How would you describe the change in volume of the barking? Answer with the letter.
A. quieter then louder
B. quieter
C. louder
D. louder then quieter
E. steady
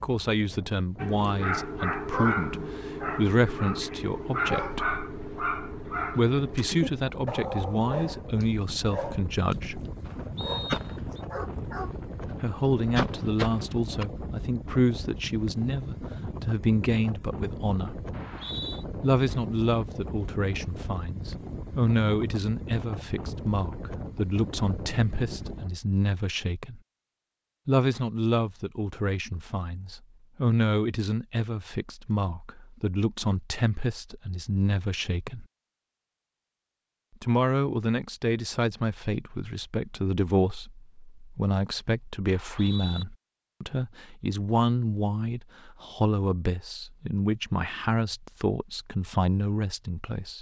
B.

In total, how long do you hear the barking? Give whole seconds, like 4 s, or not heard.
11 s.